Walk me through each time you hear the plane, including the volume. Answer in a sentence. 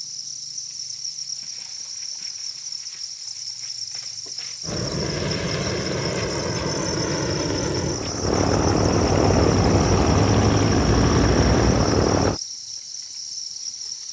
You can hear the plane from 4.6 to 12.4 s, getting louder.